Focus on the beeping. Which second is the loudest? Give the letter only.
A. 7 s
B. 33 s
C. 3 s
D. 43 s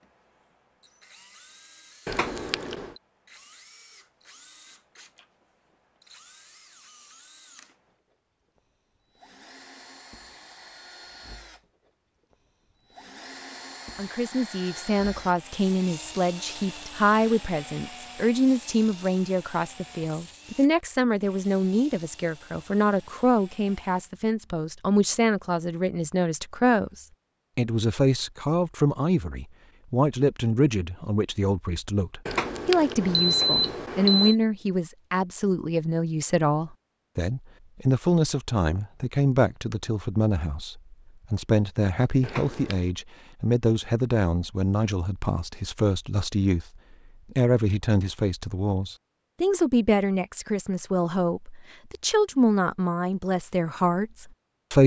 B.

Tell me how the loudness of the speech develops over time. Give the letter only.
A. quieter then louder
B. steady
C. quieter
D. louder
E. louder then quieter
B.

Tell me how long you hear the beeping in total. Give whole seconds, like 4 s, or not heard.
4 s.